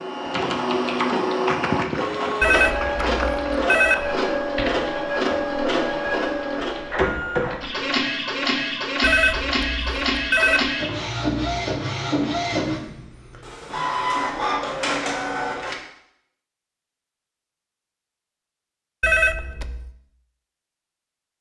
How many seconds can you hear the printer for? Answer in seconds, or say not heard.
16 s.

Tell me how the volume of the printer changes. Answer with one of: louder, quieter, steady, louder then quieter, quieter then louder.
steady.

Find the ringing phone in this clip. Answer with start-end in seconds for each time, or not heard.
2.4-4.1, 9.0-10.7, 19.0-19.9.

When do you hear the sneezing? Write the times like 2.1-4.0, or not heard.
not heard.